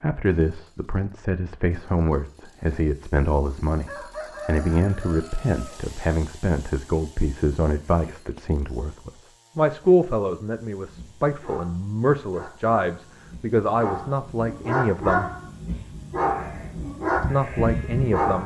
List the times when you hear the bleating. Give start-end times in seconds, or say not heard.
16.2-18.4.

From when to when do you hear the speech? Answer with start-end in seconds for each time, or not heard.
0.0-15.3, 17.2-18.4.